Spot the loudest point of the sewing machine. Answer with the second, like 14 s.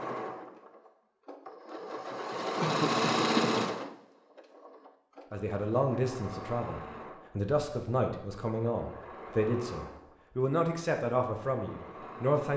3 s.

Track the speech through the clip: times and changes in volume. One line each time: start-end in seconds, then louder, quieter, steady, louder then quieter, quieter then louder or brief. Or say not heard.
5.3-12.5 steady.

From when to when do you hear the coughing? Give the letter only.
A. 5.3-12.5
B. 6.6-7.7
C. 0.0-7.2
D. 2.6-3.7
D.